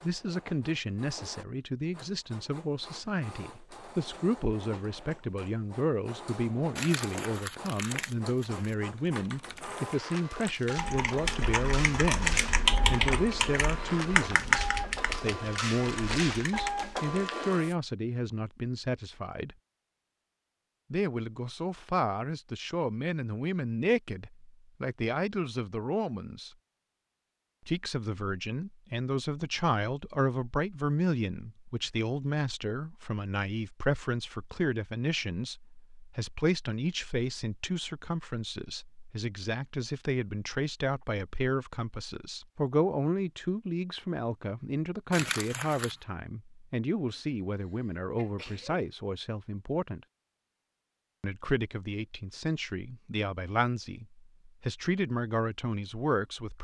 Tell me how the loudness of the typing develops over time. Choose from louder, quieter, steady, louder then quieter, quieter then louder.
louder then quieter.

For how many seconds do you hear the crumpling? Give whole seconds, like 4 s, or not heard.
3 s.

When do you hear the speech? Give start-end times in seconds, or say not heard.
0.0-19.6, 20.9-26.6, 27.6-50.0, 51.2-56.5.